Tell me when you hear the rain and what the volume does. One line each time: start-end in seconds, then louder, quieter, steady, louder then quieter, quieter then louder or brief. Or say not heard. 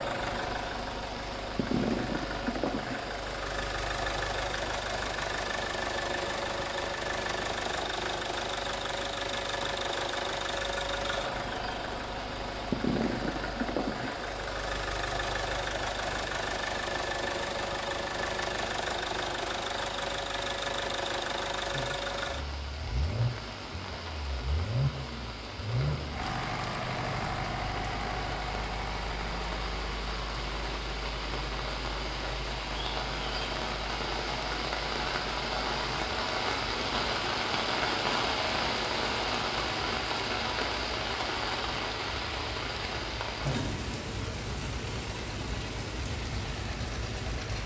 0.0-47.6 louder.